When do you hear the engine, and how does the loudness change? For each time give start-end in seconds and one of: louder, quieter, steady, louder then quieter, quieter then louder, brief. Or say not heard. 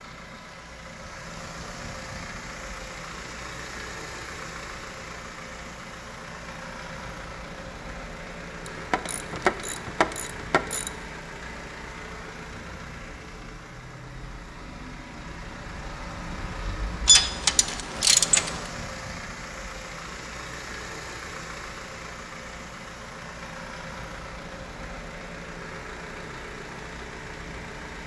0.0-28.0 steady.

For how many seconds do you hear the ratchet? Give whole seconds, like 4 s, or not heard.
4 s.